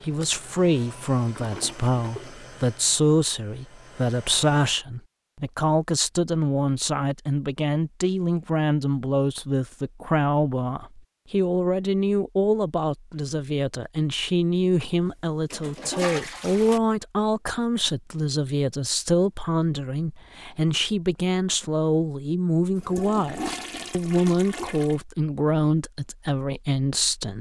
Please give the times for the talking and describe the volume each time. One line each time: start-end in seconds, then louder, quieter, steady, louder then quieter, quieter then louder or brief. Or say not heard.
0.0-27.3 steady.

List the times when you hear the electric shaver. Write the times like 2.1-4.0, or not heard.
not heard.